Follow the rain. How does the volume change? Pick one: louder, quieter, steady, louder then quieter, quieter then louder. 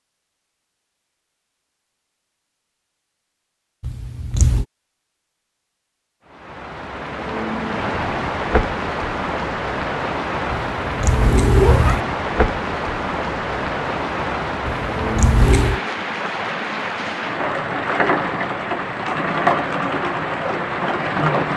steady.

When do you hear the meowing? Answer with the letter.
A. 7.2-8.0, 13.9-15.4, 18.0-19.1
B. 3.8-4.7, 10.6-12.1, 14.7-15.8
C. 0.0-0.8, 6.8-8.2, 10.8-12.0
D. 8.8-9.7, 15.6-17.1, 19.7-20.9
B.